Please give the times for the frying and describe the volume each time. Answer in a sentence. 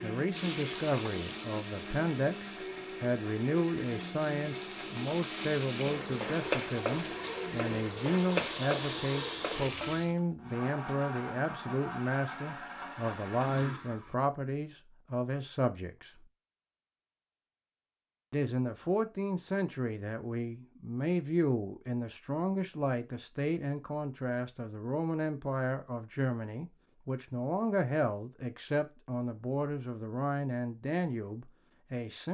The frying can be heard from 0.2 to 10.2 s, getting quieter then louder.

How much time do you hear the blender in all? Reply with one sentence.
You can hear the blender for 14 seconds altogether.